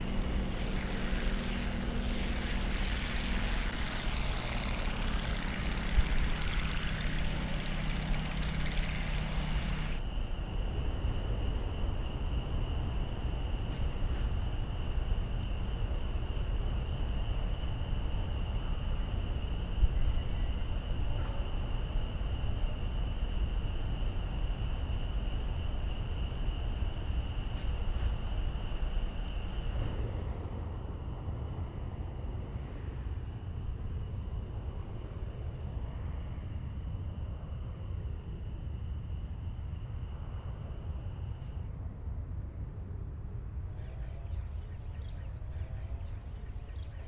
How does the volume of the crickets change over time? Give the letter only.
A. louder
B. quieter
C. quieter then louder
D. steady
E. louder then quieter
B.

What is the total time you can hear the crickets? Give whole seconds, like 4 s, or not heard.
47 s.